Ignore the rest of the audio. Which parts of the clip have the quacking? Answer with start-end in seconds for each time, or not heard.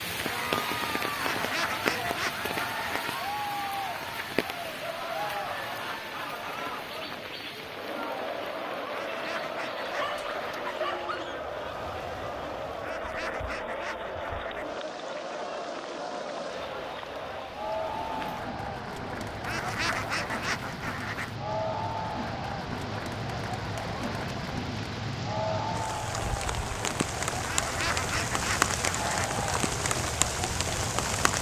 1.1-3.1, 8.9-10.6, 12.8-14.8, 19.4-21.4, 27.4-29.2.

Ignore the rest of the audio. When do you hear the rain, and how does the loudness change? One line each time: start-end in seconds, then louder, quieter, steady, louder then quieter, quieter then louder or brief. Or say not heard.
0.0-31.3 quieter then louder.